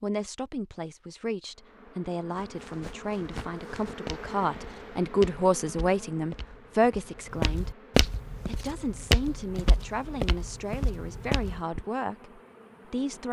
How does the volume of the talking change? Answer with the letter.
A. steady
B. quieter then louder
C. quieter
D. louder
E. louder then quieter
E.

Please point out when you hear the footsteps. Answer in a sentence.
You can hear the footsteps from 2.4 to 11.8 s.